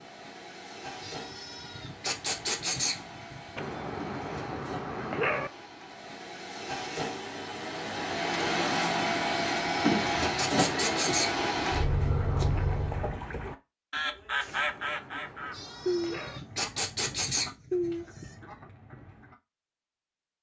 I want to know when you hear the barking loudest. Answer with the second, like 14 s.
5 s.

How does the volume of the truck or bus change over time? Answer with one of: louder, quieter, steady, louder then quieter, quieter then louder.
louder.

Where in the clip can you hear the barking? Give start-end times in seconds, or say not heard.
3.5-5.5, 14.4-16.4.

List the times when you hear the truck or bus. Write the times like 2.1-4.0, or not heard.
0.0-13.2.